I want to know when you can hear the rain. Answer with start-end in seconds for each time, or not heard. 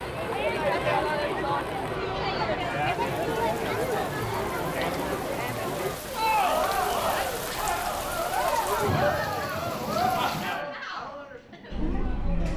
0.0-10.6.